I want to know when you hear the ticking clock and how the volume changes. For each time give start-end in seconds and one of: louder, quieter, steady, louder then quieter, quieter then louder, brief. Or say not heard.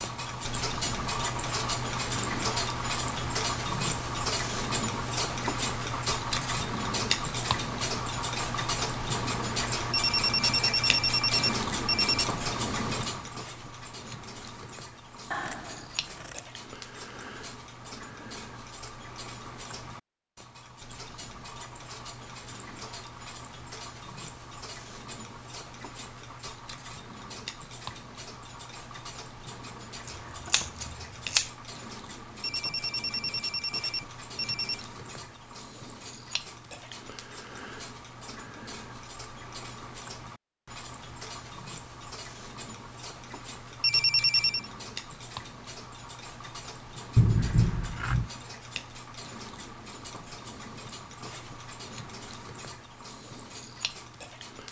0.0-54.6 quieter.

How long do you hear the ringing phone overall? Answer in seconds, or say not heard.
6 s.